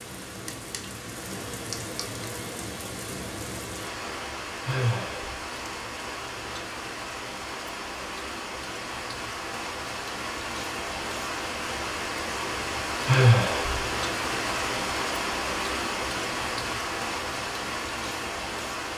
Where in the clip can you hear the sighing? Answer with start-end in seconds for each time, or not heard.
4.7-5.3, 13.1-13.8.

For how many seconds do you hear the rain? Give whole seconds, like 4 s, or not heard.
19 s.